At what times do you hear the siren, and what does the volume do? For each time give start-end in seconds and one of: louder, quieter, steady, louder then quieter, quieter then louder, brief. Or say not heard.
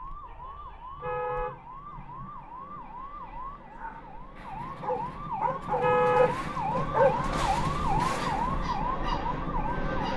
0.0-10.1 louder.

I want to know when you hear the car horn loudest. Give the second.
6 s.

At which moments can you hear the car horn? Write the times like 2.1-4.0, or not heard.
0.9-2.5, 5.8-7.3.